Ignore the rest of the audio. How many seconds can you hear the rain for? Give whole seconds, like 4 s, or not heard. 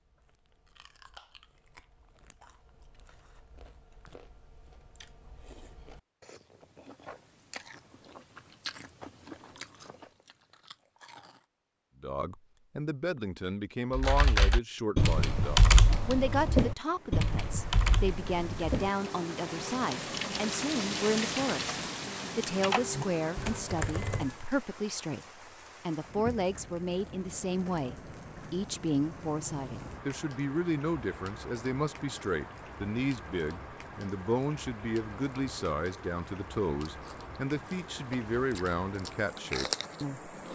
24 s.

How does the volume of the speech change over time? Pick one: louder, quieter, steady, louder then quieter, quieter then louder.
steady.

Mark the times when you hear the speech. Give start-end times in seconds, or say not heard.
12.0-25.2, 25.9-40.5.